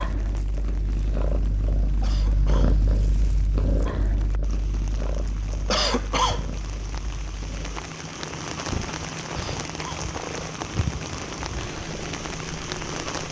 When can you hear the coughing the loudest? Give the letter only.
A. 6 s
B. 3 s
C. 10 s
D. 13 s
A.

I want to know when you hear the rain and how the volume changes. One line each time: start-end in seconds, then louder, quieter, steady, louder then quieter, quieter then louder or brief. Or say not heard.
0.0-13.2 louder.